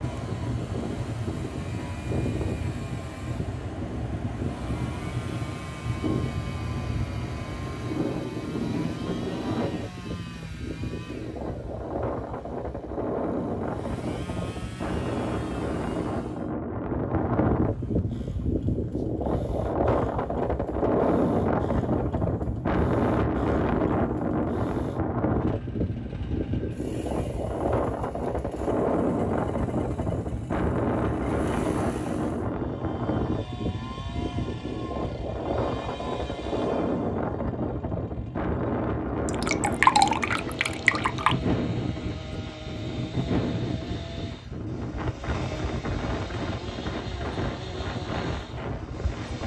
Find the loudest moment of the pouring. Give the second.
40 s.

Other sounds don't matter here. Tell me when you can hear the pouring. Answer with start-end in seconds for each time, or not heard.
39.2-41.4.